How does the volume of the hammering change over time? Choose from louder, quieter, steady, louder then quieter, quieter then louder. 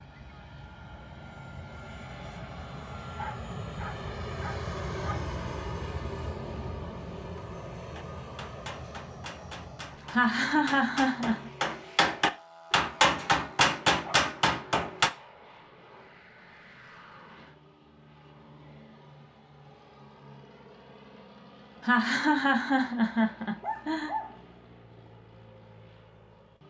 louder.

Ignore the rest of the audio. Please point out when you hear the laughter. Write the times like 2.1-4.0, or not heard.
10.1-11.5, 21.8-24.1.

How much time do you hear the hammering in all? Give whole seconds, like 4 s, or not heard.
7 s.